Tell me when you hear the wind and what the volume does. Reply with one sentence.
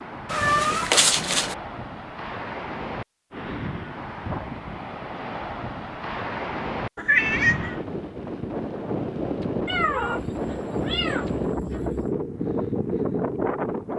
You can hear the wind from 0.0 to 13.9 s, getting louder.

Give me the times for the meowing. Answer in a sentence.
You can hear the meowing from 0.2 to 1.6 s, from 7.0 to 7.8 s and from 9.7 to 12.1 s.